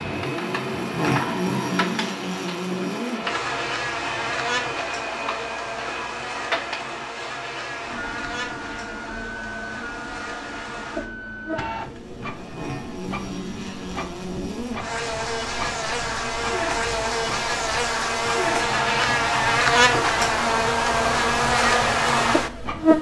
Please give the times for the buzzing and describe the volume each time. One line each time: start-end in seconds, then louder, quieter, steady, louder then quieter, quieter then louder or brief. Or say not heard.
0.0-22.9 quieter then louder.